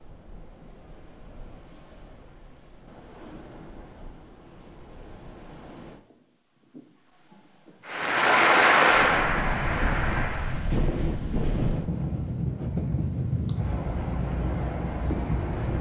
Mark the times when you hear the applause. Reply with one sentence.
You can hear the applause from 7.8 to 10.7 s.